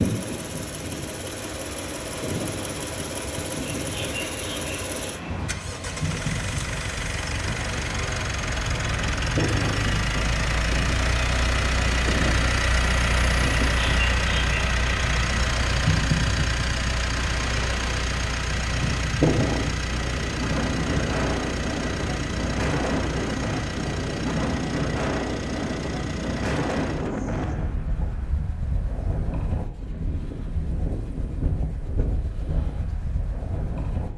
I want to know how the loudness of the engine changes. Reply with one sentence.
The loudness of the engine goes up, then down.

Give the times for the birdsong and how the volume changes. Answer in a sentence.
You can't hear the birdsong here.